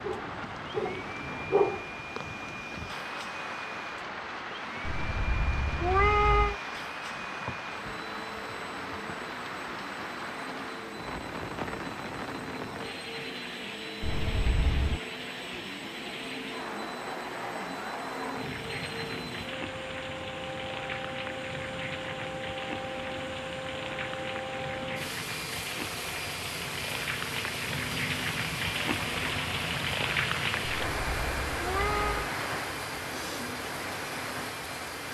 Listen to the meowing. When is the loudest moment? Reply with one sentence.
The loudest moment of the meowing is at 6 seconds.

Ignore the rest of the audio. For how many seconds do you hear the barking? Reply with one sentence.
You can hear the barking for 2 seconds altogether.